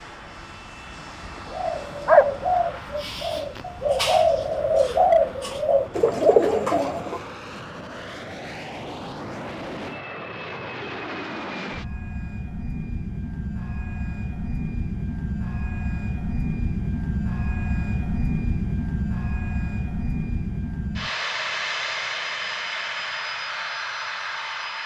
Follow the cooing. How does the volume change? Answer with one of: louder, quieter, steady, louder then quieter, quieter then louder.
quieter then louder.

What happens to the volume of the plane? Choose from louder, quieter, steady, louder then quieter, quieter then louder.
louder.